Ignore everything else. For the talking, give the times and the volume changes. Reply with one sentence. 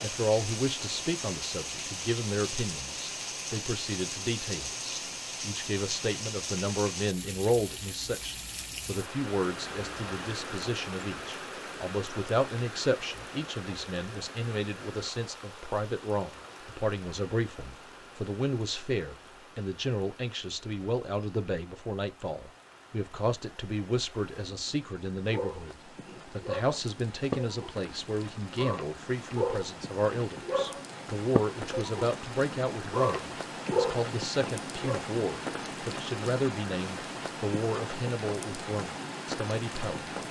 You can hear the talking from 0.0 to 40.1 s, at a steady volume.